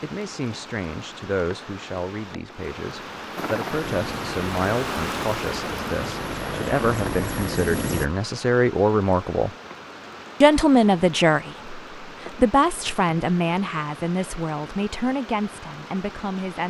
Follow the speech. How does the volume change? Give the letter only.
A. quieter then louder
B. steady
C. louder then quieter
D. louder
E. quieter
C.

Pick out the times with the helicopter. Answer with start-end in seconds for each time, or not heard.
3.4-8.1.